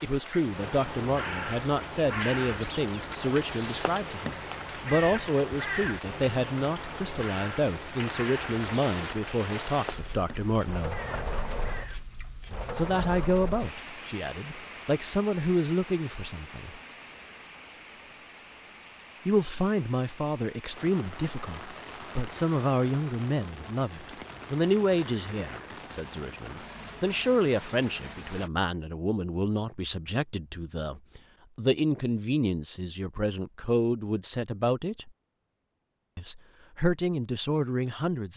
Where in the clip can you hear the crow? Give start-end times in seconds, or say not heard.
0.4-12.1.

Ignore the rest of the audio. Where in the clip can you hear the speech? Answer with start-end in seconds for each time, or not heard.
0.0-11.0, 12.8-16.8, 19.2-35.1, 36.1-38.3.